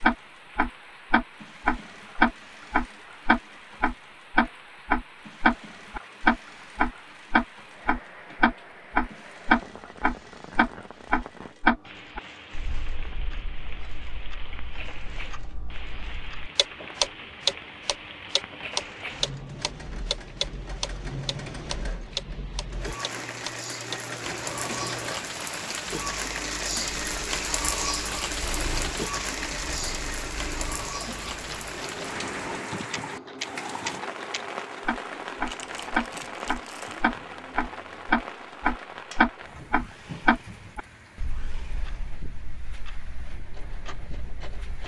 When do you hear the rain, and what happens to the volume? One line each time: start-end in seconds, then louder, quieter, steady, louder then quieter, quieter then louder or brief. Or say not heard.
0.0-44.8 louder then quieter.